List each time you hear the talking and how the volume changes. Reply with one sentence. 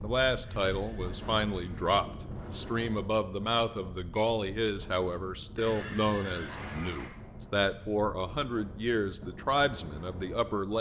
The talking can be heard from 0.0 to 10.7 s, at a steady volume.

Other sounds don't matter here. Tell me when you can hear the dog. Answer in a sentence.
You can't hear the dog here.